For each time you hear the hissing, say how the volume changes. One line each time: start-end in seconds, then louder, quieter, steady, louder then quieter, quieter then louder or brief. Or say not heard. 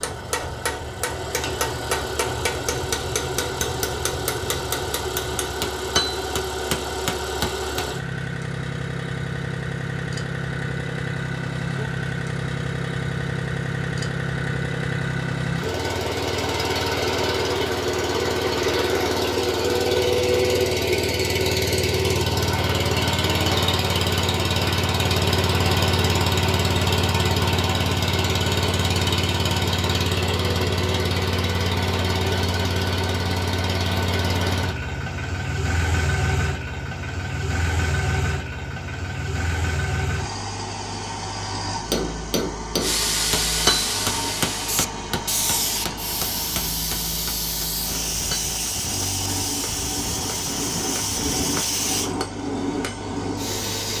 42.8-52.1 steady
53.4-53.9 brief.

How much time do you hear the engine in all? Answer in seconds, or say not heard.
54 s.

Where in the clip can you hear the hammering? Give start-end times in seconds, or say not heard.
0.0-7.9, 41.7-53.5.